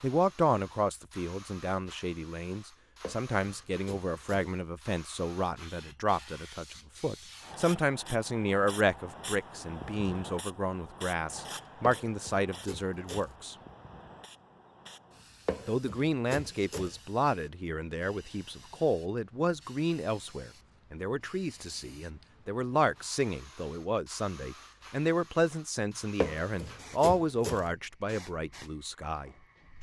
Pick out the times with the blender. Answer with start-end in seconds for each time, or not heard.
not heard.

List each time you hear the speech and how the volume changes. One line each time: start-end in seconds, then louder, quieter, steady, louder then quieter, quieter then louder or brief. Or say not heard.
0.0-13.6 steady
15.7-29.3 steady.